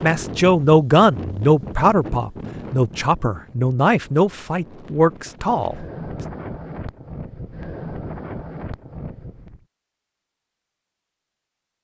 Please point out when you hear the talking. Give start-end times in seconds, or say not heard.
0.0-6.2.